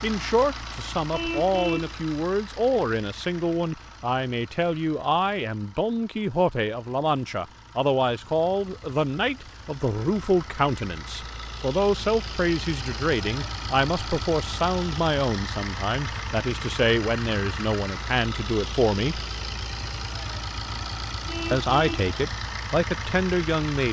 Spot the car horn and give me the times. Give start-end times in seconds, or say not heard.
1.1-1.9, 21.2-22.1.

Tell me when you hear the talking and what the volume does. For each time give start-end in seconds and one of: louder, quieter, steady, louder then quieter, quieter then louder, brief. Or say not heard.
0.0-19.2 steady
21.5-23.8 brief.